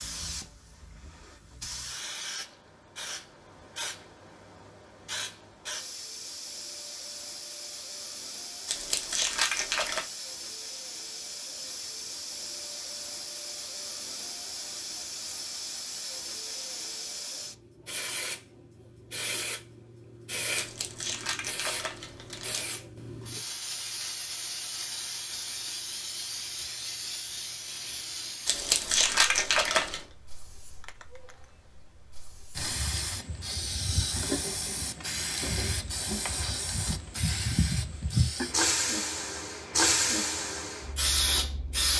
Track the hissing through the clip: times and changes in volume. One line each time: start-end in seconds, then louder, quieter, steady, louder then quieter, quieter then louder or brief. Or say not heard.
0.0-41.9 louder.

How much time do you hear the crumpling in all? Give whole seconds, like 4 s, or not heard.
5 s.